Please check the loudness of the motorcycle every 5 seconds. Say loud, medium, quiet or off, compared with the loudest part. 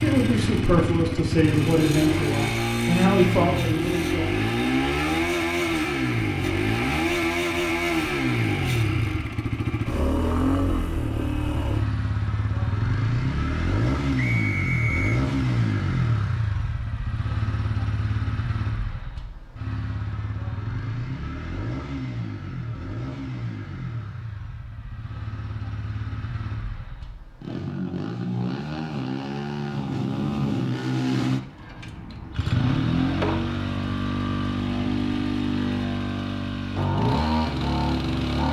loud, loud, loud, loud, medium, medium, loud, loud.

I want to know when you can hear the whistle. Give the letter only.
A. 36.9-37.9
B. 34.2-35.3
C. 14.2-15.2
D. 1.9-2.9
C.